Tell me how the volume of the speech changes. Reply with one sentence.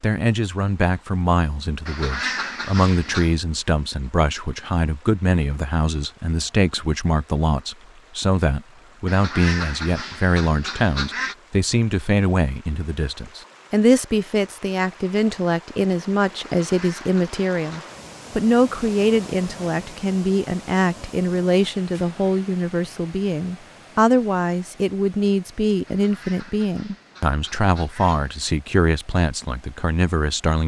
The volume of the speech stays about the same.